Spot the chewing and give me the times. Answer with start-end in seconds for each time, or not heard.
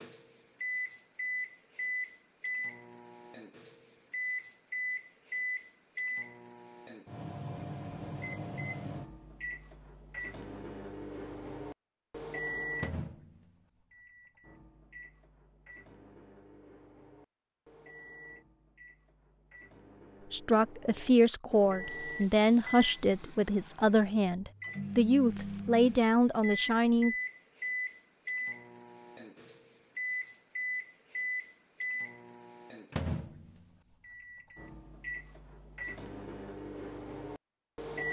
not heard.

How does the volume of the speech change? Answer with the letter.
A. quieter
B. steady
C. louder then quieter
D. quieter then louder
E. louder
B.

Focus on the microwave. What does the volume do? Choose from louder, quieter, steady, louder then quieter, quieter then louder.
quieter then louder.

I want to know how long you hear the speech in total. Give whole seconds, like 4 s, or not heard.
7 s.